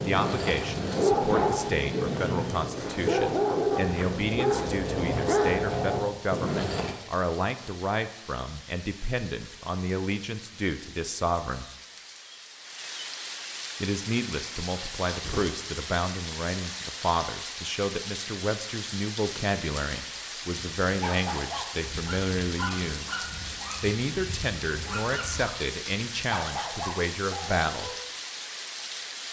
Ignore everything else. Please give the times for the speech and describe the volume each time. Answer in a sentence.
You can hear the speech from 0.0 to 11.7 s, at a steady volume; and from 13.8 to 27.9 s, at a steady volume.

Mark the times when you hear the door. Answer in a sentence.
You can hear the door from 0.9 to 1.7 s and from 15.1 to 15.7 s.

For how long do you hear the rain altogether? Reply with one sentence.
The rain can be heard for 29 seconds in total.